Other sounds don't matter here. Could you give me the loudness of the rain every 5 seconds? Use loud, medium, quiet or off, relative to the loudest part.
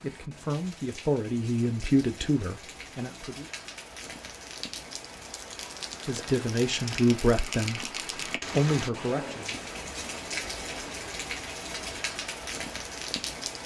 medium, loud, loud.